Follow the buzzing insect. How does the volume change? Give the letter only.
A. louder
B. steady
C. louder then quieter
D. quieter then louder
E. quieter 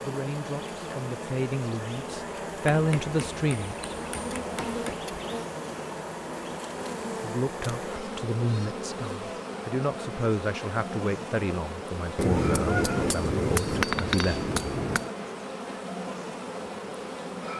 B.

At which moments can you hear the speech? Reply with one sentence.
The speech can be heard from 0.0 to 4.0 s and from 7.2 to 14.5 s.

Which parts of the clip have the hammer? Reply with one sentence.
You can hear the hammer from 2.7 to 5.0 s and from 12.2 to 15.1 s.